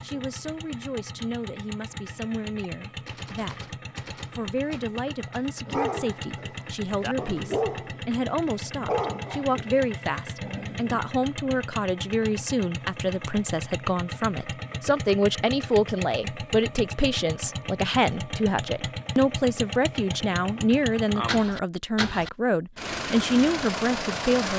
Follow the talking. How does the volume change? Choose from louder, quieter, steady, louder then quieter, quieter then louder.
louder.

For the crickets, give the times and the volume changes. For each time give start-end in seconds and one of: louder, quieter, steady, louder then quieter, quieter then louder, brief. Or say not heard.
not heard.